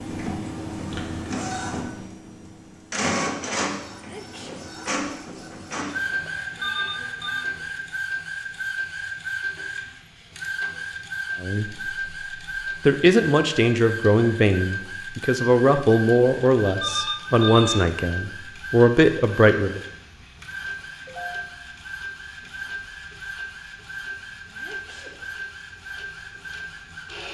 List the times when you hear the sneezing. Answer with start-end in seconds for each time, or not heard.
3.9-4.6, 24.4-25.1.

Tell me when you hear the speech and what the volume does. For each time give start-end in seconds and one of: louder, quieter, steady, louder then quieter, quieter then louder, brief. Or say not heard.
11.4-19.8 steady.